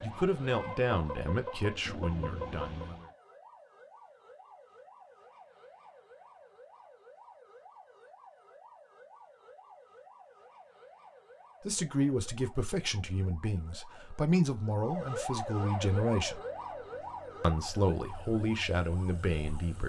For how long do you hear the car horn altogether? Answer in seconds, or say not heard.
2 s.